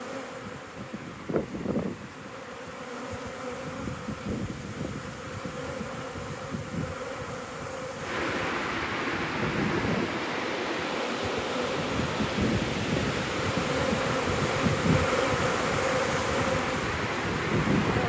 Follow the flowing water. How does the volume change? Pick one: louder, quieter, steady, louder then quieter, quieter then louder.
louder.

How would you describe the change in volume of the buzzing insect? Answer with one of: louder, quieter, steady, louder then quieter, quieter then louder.
louder.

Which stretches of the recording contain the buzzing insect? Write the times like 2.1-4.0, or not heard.
0.0-18.0.